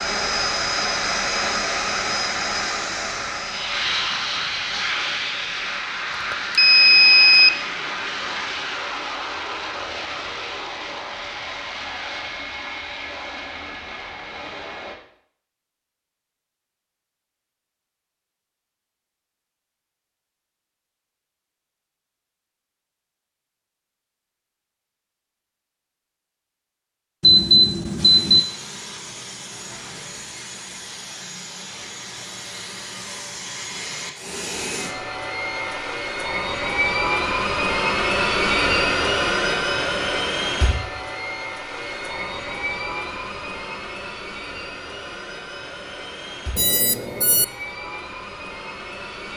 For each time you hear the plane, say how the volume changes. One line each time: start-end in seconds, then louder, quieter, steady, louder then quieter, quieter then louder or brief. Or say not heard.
0.0-14.9 quieter
27.9-49.3 louder then quieter.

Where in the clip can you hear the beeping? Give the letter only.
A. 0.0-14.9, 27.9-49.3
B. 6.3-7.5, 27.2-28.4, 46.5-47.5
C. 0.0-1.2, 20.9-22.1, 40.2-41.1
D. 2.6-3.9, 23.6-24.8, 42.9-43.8
B.